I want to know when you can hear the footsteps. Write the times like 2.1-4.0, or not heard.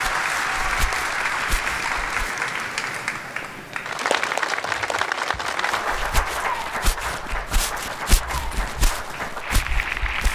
0.0-2.4, 5.7-10.3.